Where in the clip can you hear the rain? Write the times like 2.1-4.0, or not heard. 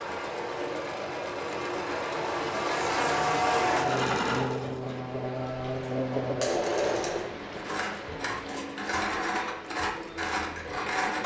4.8-11.2.